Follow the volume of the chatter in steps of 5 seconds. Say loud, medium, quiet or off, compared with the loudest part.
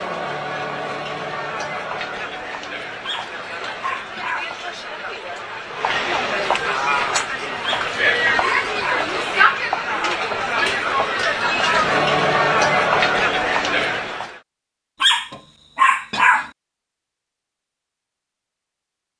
medium, loud, loud, off.